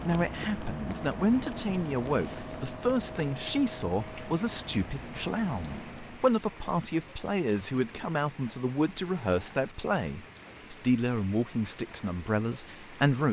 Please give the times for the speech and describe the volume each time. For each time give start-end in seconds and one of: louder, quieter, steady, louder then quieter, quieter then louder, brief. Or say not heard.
0.0-13.2 steady.